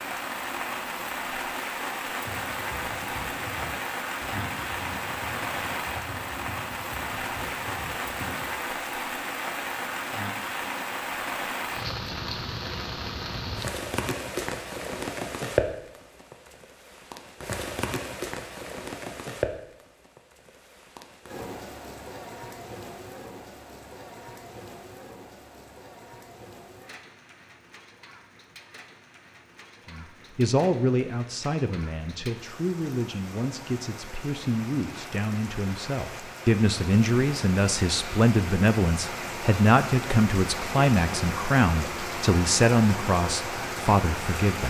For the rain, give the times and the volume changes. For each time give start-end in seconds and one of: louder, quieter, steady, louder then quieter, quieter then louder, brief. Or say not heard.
0.0-44.6 quieter then louder.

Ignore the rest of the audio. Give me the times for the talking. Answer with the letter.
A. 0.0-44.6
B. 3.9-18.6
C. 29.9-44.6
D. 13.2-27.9
C.